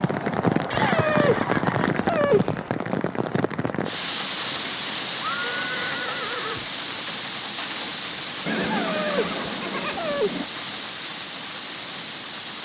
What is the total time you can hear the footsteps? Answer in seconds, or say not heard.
not heard.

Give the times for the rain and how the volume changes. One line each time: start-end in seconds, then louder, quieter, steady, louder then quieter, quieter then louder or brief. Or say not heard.
0.0-12.6 quieter.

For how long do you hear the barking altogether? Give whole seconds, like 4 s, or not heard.
4 s.